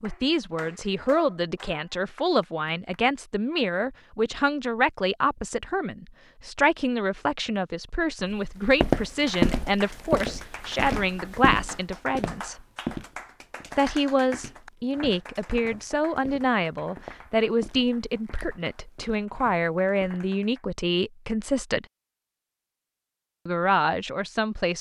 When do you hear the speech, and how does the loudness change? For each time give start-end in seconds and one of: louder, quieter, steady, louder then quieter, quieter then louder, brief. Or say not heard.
0.0-12.6 steady
13.8-21.9 steady
23.4-24.7 brief.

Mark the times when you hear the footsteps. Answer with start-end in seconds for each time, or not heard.
8.3-20.2.